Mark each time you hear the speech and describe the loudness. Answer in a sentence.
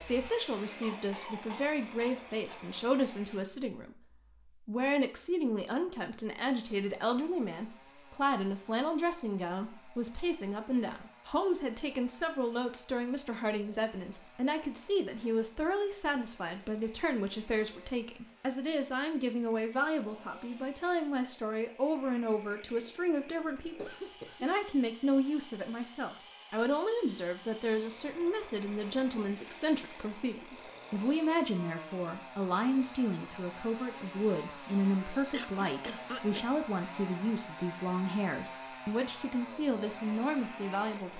The speech can be heard from 0.0 to 41.1 s, at a steady volume.